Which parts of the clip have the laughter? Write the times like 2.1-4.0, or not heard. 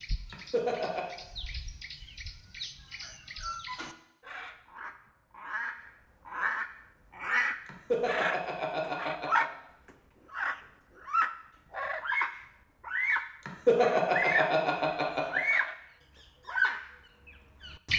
0.2-1.1, 7.7-9.4, 13.4-15.4.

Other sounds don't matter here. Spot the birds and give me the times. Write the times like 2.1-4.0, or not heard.
0.0-9.5, 10.3-14.6, 15.3-15.8, 16.4-17.9.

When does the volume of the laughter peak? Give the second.
14 s.